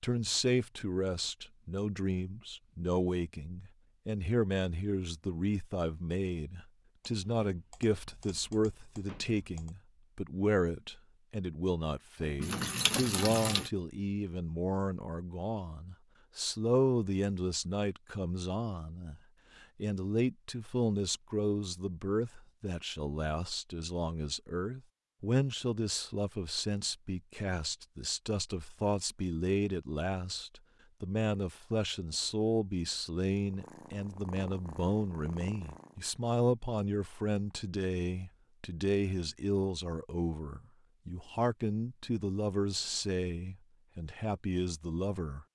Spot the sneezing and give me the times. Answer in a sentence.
The sneezing can't be heard in this clip.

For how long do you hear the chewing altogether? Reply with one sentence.
You can't hear the chewing here.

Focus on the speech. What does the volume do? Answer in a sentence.
The loudness of the speech stays about the same.